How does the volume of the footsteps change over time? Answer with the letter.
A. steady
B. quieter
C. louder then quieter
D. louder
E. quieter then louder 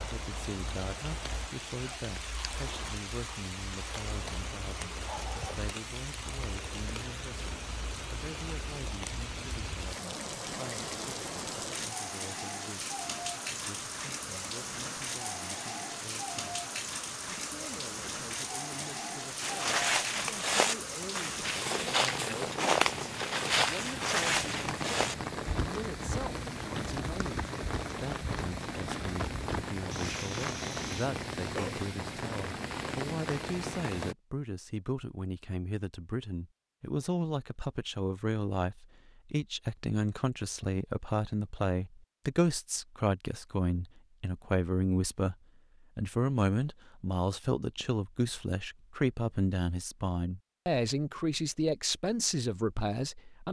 B.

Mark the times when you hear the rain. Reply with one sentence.
The rain can be heard from 0.0 to 34.1 s.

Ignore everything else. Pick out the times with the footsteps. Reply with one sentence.
You can hear the footsteps from 19.4 to 31.1 s.